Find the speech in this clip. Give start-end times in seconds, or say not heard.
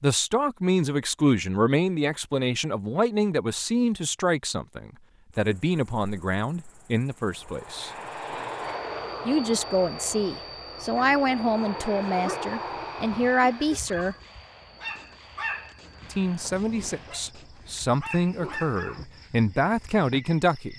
0.0-7.9, 9.2-14.2, 16.1-20.7.